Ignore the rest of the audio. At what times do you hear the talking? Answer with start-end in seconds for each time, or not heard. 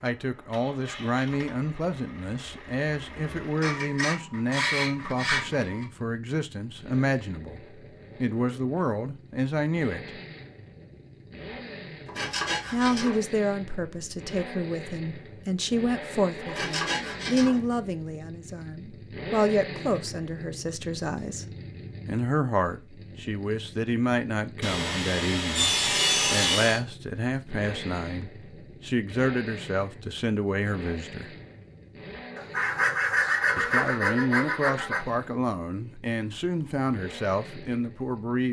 0.0-7.6, 8.2-10.1, 12.7-21.4, 22.1-31.3, 33.5-38.4.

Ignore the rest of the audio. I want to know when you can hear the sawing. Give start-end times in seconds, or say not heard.
3.6-5.8, 12.1-13.2, 16.4-17.6, 24.6-26.8, 32.4-35.0.